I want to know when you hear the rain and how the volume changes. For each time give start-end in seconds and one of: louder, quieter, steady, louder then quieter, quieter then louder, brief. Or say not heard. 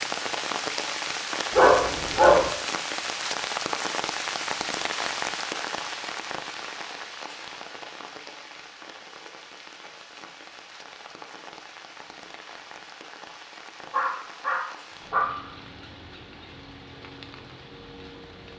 0.0-18.5 quieter.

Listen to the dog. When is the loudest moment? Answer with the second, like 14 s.
2 s.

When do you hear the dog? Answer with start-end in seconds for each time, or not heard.
1.5-2.5, 13.9-15.4.